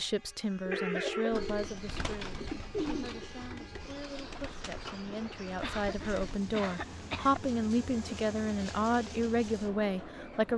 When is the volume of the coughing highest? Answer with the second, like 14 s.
1 s.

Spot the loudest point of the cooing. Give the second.
3 s.